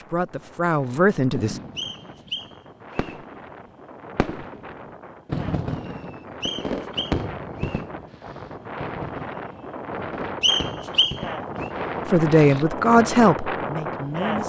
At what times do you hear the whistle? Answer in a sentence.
The whistle can be heard from 1.8 to 3.1 s, from 6.4 to 7.8 s and from 10.4 to 11.7 s.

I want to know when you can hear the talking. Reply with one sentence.
You can hear the talking from 0.0 to 1.6 s and from 12.1 to 14.4 s.